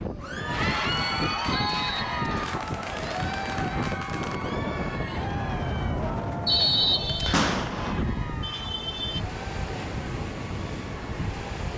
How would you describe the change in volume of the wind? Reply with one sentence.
The volume of the wind stays about the same.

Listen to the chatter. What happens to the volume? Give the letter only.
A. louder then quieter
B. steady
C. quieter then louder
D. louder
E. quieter
E.